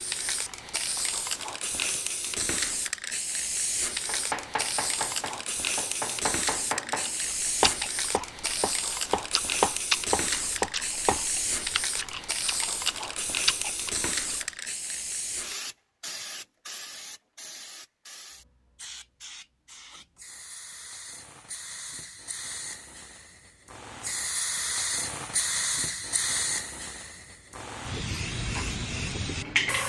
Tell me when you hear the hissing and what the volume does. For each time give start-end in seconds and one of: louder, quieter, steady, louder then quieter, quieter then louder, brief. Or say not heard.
0.0-29.8 quieter then louder.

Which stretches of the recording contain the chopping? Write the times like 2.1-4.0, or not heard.
4.0-11.2.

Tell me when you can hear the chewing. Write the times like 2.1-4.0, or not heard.
7.0-14.4.